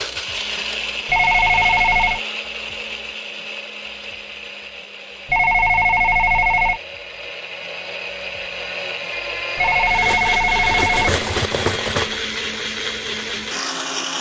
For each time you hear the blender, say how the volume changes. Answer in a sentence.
You can hear the blender from 0.0 to 14.1 s, getting quieter then louder.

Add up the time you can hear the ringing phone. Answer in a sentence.
You can hear the ringing phone for 4 seconds altogether.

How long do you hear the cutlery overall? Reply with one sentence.
The cutlery can be heard for 2 seconds in total.